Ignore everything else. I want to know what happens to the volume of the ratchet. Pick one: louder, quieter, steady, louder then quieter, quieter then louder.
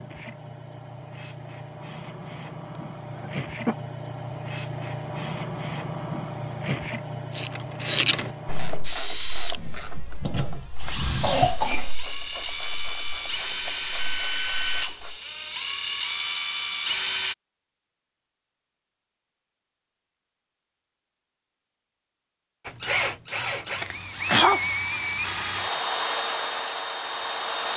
quieter.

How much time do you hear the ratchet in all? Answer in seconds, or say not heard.
8 s.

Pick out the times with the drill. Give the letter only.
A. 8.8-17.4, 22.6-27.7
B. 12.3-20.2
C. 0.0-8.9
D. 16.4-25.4
A.